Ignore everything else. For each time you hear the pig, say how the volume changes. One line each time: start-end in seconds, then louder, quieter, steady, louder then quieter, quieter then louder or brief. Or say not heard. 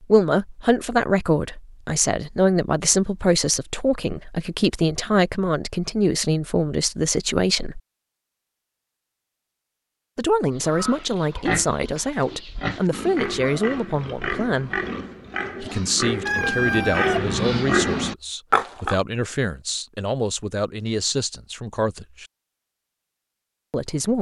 10.6-18.9 louder.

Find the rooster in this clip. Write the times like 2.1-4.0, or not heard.
16.2-17.3.